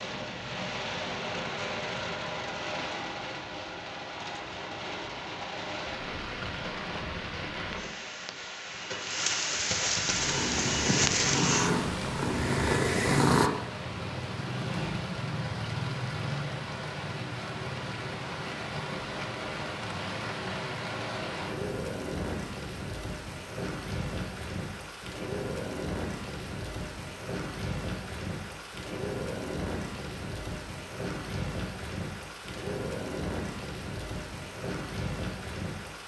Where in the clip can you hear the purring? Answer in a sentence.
You can hear the purring from 10.1 to 13.5 s.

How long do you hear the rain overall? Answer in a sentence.
The rain can be heard for 36 seconds in total.